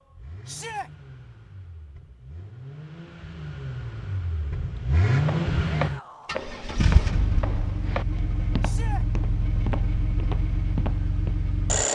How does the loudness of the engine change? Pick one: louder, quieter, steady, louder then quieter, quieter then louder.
louder then quieter.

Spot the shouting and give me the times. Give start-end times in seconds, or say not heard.
0.5-0.9, 5.8-6.3, 8.6-9.1.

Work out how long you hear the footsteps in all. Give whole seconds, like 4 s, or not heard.
6 s.